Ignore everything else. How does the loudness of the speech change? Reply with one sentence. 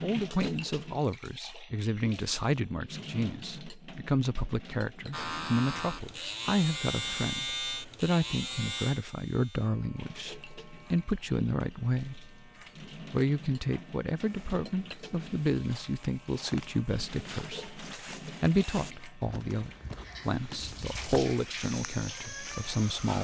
The volume of the speech stays about the same.